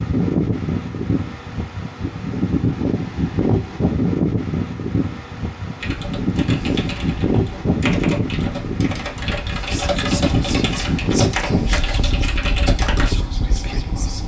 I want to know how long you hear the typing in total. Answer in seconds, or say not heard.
7 s.